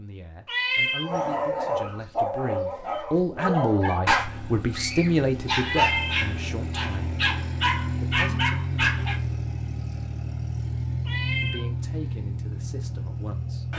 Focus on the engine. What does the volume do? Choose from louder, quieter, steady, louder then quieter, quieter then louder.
louder.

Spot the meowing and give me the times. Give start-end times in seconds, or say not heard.
0.5-1.1, 5.6-6.2, 11.1-11.7.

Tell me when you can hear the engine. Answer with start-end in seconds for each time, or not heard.
4.2-13.7.